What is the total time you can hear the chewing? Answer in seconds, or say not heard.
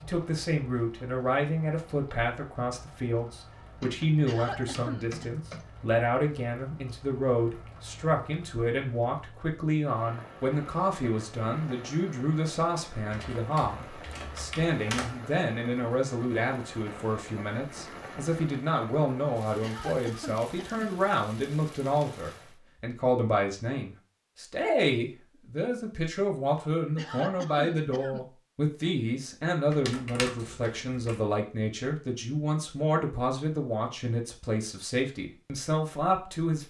not heard.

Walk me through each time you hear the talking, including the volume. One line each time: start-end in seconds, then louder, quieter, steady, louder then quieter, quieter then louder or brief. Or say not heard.
0.0-36.6 steady.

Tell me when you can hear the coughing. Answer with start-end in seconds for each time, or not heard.
4.2-5.2, 19.6-20.9, 26.9-28.2.